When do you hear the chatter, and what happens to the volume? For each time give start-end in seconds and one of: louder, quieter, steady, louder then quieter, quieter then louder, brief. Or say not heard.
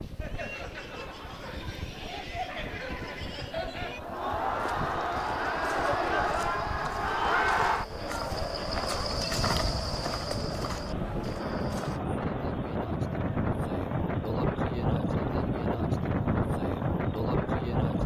0.0-18.0 louder then quieter.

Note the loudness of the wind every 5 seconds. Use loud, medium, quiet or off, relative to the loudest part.
quiet, quiet, loud, loud.